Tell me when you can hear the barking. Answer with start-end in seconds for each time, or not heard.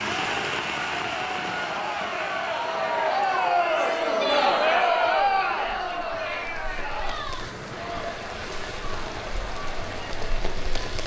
not heard.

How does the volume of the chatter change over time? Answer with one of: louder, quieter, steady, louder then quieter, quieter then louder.
louder then quieter.